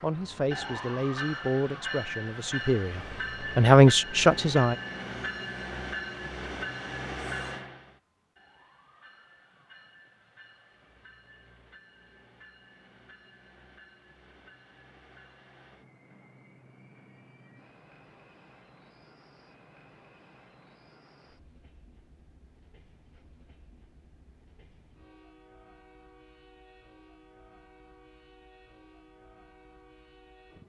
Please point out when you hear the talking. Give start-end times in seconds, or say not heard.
0.0-4.8.